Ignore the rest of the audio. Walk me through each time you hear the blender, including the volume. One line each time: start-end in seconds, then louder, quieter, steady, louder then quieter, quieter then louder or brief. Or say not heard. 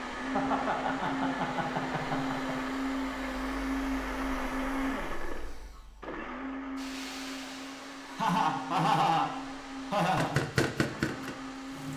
0.0-11.9 quieter.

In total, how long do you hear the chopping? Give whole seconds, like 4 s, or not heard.
2 s.